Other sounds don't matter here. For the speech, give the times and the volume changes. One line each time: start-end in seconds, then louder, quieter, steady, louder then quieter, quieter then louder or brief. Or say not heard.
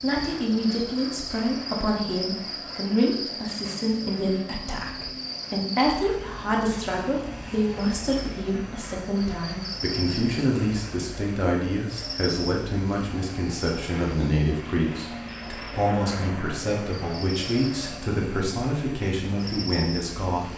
0.0-20.5 steady.